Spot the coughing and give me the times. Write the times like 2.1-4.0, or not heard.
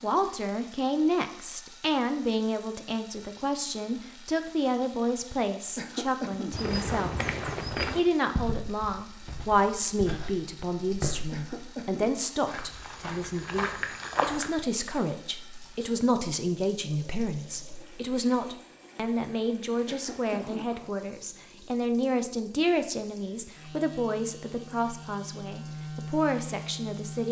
5.8-6.6, 11.3-12.2, 19.9-20.7.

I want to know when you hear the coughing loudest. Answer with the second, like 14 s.
6 s.